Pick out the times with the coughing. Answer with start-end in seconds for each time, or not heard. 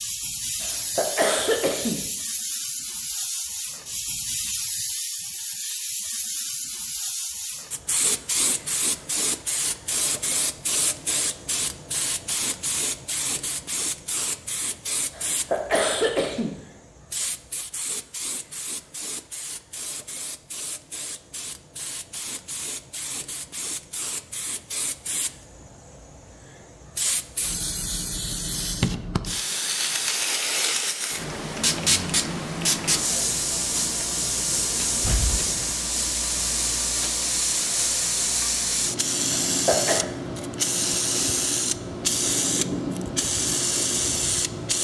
0.6-2.1, 15.1-16.6, 39.5-40.0.